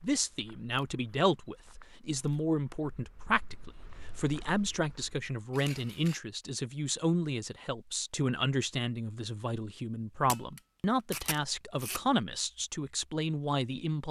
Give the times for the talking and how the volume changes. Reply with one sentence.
You can hear the talking from 0.0 to 14.0 s, at a steady volume.